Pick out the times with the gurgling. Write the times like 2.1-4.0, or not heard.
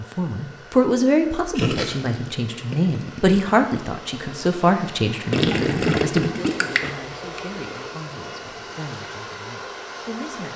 1.6-3.5, 5.3-7.0.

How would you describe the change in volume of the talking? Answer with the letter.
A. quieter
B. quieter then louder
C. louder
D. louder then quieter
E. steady
A.